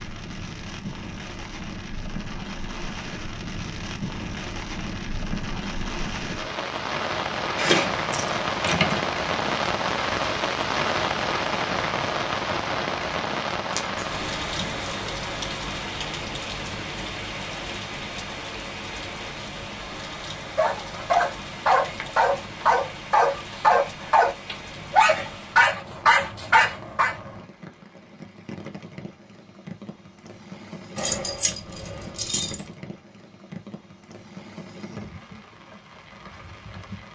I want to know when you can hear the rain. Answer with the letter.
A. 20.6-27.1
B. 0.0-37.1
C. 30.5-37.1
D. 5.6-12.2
B.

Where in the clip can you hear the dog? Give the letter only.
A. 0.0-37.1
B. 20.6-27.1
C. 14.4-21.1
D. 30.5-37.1
B.